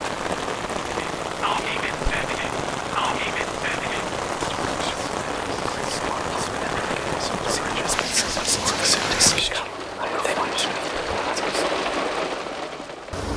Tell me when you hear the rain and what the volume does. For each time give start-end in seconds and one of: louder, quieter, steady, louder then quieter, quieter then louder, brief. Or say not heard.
0.0-13.3 steady.